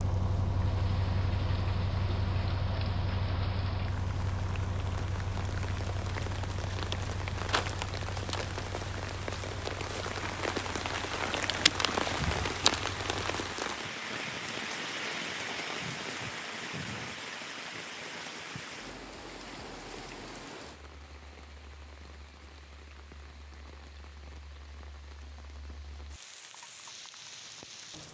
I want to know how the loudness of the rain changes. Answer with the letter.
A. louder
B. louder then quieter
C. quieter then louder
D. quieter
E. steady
B.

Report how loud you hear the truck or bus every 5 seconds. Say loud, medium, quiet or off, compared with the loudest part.
loud, medium, quiet, off, off, off.